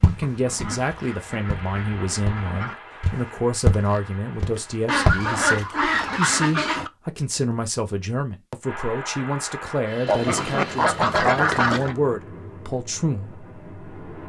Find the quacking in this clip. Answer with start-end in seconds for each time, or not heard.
0.2-2.8, 4.8-6.9, 10.1-11.9.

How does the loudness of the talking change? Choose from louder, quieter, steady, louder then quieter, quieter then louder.
steady.